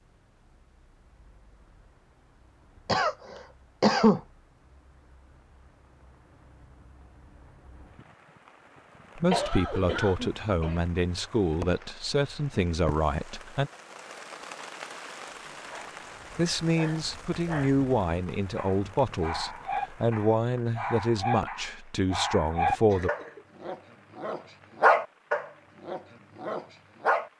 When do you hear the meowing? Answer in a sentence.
The meowing can't be heard in this clip.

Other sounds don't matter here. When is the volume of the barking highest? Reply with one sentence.
The loudest moment of the barking is at 25 seconds.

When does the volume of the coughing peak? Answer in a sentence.
The volume of the coughing peaks at 4 seconds.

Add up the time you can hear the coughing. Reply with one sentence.
You can hear the coughing for 4 seconds altogether.